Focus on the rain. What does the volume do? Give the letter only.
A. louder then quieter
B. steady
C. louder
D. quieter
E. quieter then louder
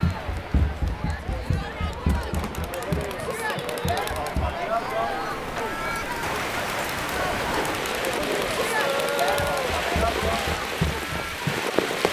C.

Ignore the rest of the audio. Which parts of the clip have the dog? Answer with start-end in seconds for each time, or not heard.
8.7-9.8.